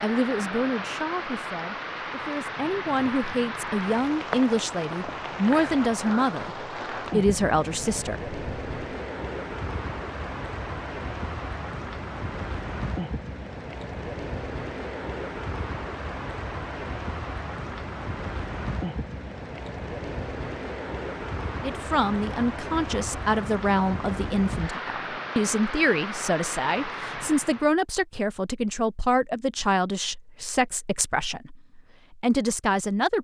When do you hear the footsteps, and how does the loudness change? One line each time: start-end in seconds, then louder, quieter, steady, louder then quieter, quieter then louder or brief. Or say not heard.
not heard.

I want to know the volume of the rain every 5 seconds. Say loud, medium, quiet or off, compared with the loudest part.
loud, loud, loud, loud, loud, loud, off.